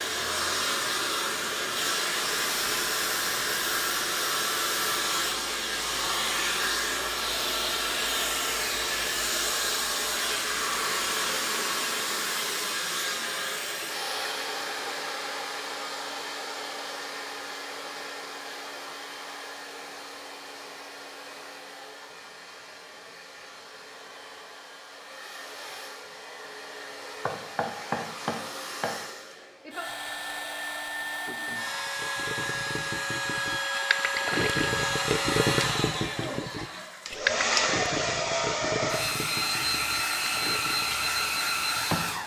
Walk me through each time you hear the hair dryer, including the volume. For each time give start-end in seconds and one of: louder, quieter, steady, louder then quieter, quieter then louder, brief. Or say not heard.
0.0-42.2 quieter then louder.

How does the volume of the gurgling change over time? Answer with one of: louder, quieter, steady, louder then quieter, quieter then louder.
louder then quieter.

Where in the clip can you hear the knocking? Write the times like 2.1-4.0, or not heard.
27.2-28.9.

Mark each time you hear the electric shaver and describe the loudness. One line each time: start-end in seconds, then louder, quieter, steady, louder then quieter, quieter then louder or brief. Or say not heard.
not heard.